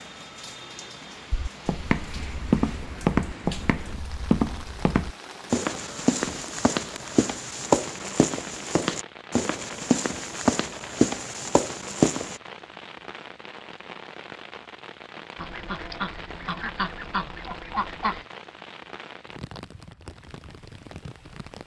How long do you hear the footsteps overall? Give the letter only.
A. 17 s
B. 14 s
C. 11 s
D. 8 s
C.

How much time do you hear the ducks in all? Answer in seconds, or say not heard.
5 s.